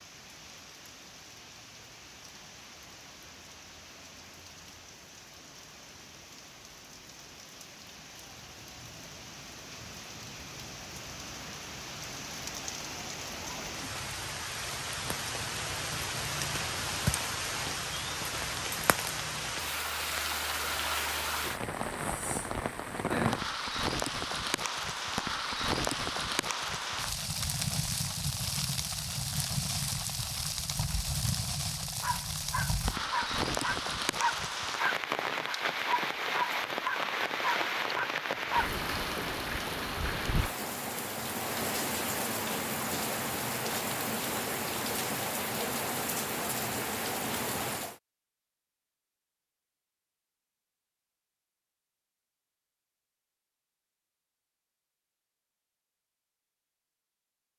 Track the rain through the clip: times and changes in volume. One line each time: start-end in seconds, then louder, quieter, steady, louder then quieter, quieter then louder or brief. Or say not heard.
0.0-48.0 louder.